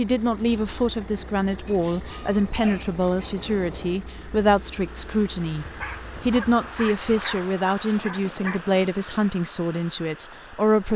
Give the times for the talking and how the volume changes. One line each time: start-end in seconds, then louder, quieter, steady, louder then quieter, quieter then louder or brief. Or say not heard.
0.0-10.9 steady.